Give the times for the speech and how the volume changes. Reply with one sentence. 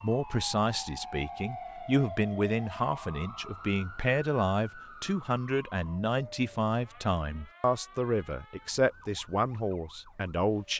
You can hear the speech from 0.0 to 10.7 s, at a steady volume.